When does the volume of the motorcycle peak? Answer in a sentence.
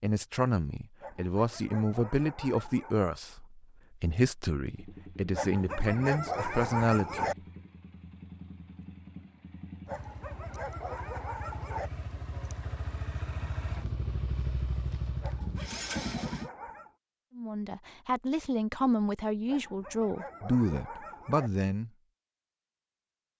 The loudest moment of the motorcycle is at 16 seconds.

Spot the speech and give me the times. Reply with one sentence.
The speech can be heard from 0.0 to 7.3 s and from 17.4 to 21.9 s.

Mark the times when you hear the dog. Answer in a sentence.
The dog can be heard from 1.0 to 3.0 s, from 5.3 to 7.3 s, from 9.8 to 11.9 s, from 15.2 to 16.9 s and from 19.4 to 21.5 s.